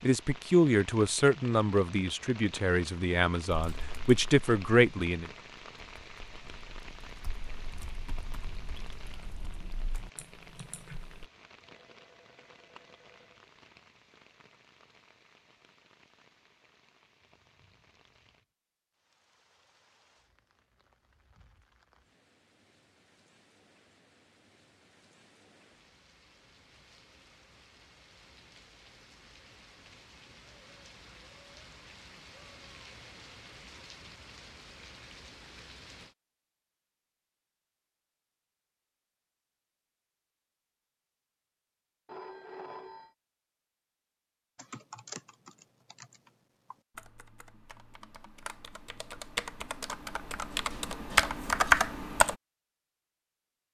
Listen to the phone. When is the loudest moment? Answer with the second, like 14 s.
43 s.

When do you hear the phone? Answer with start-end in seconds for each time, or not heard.
11.7-13.4, 42.0-43.1.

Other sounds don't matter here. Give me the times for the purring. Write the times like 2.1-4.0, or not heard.
not heard.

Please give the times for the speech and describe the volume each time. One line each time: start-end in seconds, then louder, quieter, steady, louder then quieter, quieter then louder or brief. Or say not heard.
0.0-5.3 quieter then louder.